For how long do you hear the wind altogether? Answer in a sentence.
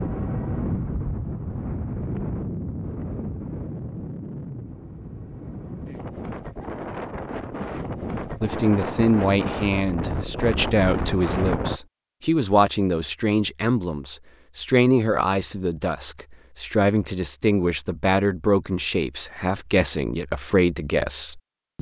You can hear the wind for 12 seconds altogether.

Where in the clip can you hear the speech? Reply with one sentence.
The speech can be heard from 8.4 to 21.7 s.